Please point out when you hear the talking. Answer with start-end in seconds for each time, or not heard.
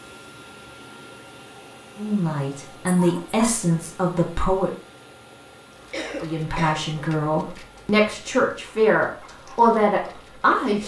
1.9-4.7, 6.2-10.8.